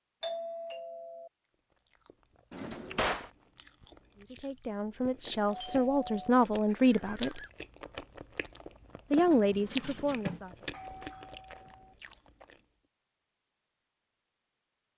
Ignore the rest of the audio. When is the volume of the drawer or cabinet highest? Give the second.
3 s.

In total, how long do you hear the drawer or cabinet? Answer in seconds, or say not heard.
2 s.